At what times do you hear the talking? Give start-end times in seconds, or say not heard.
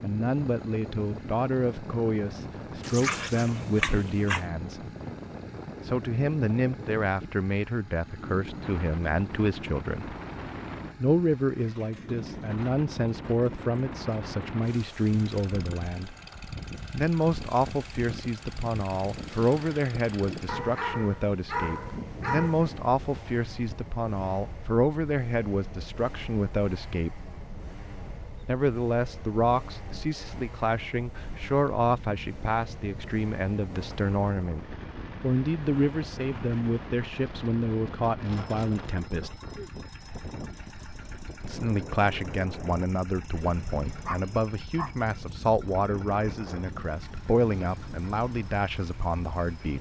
0.0-4.8, 5.8-10.2, 11.0-16.1, 16.9-27.3, 28.4-39.4, 41.4-49.7.